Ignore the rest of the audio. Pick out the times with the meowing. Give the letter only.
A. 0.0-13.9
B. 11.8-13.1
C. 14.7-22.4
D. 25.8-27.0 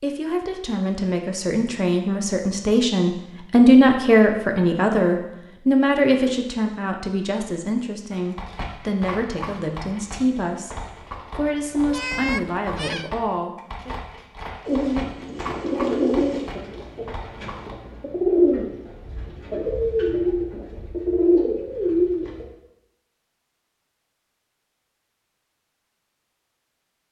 B.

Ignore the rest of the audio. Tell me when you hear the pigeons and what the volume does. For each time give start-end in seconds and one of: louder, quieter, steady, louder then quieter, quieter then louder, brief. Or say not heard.
14.7-22.4 quieter then louder.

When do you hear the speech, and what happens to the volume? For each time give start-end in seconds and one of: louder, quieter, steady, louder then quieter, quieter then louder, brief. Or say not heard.
0.0-13.9 louder then quieter.